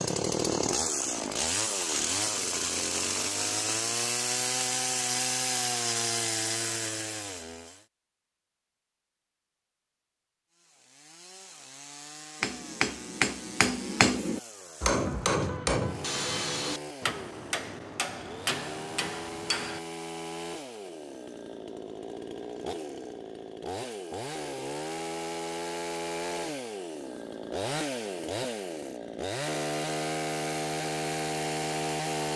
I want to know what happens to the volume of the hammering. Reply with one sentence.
The loudness of the hammering goes down.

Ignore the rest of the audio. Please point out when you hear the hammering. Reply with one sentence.
The hammering can be heard from 12.4 to 19.8 s.